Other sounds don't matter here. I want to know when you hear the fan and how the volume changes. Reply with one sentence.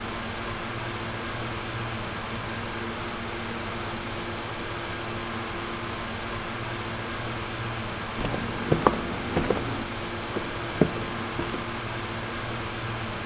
The fan can be heard from 0.0 to 13.2 s, at a steady volume.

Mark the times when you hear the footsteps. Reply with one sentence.
The footsteps can be heard from 8.2 to 11.7 s.